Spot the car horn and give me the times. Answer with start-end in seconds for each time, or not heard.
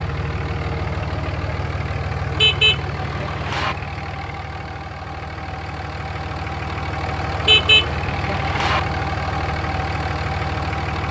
2.4-3.8, 7.4-8.8.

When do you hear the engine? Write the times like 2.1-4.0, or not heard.
0.0-11.0.